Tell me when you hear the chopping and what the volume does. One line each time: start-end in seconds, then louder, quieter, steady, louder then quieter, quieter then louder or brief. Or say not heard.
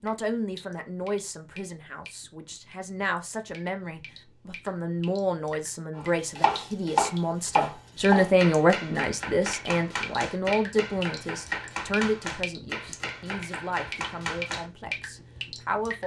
6.0-14.7 quieter.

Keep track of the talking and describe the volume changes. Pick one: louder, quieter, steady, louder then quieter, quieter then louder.
louder then quieter.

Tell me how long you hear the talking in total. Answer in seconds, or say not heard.
16 s.